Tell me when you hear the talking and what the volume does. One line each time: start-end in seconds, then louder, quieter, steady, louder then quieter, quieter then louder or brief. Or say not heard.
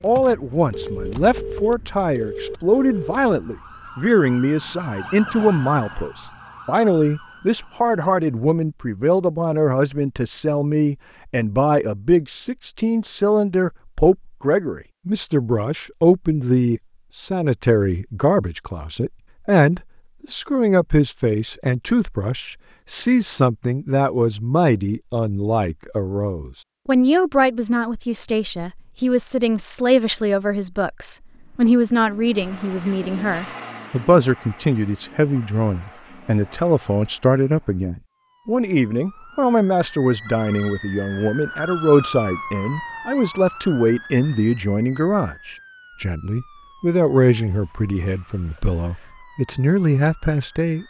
0.0-50.8 steady.